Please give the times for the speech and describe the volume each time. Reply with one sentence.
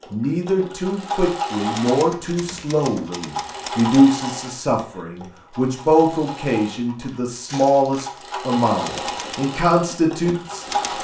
The speech can be heard from 0.1 to 10.9 s, at a steady volume.